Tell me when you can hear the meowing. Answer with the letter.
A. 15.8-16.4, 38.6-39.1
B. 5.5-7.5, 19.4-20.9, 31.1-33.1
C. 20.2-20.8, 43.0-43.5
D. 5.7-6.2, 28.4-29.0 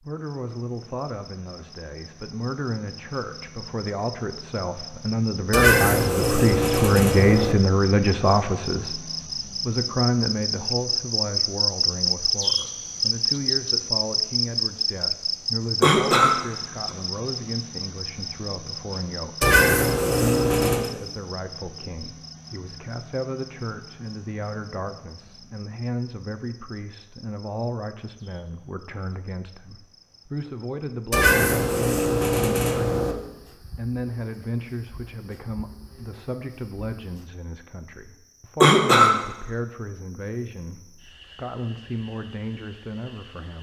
B.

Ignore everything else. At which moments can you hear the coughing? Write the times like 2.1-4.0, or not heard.
15.8-16.4, 38.6-39.1.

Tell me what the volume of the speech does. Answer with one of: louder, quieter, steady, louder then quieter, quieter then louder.
quieter.